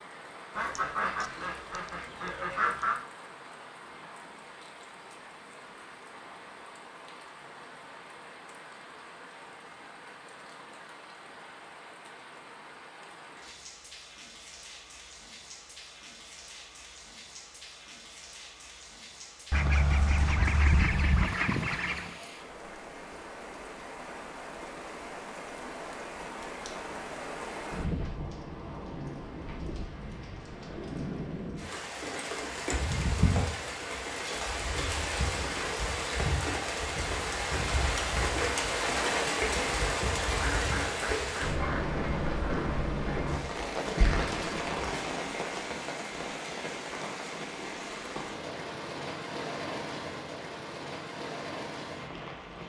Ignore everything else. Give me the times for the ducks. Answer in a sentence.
You can hear the ducks from 0.6 to 3.0 s, from 19.5 to 22.1 s and from 40.4 to 41.9 s.